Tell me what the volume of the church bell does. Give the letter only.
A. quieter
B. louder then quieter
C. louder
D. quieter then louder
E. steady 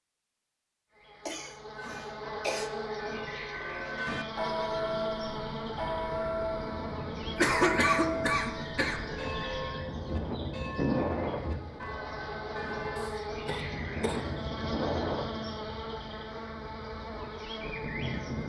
B.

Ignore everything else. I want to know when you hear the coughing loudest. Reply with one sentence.
The loudest moment of the coughing is at 8 seconds.